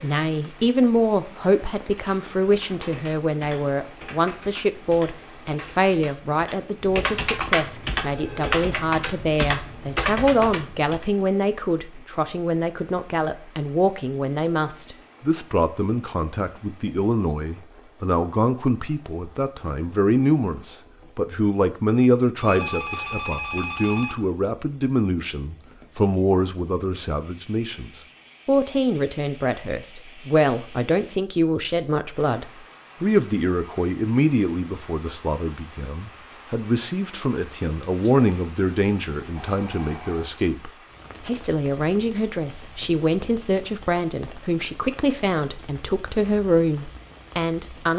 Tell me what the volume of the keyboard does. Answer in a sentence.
The volume of the keyboard goes up.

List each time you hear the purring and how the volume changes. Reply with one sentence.
The purring can't be heard in this clip.